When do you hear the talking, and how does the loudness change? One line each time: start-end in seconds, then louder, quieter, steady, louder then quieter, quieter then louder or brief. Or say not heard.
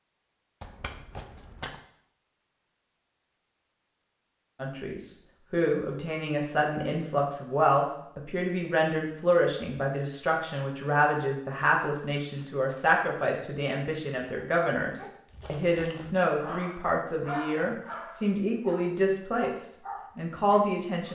4.5-21.1 steady.